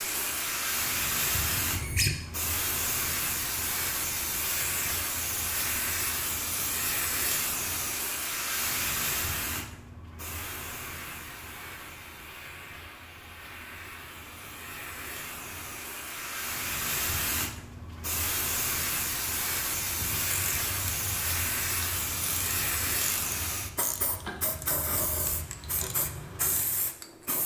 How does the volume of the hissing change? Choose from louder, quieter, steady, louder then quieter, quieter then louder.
quieter then louder.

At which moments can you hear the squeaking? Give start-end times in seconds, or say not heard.
1.3-2.1.